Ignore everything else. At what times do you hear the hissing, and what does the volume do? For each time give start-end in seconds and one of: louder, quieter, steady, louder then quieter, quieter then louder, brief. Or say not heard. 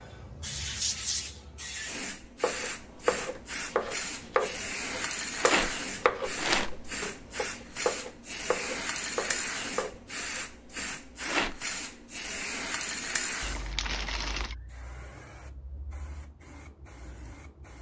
0.0-17.7 quieter.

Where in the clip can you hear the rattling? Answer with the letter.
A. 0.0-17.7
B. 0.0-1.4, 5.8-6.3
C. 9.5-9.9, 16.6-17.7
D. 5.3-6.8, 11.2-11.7
D.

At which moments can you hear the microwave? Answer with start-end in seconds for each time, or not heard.
not heard.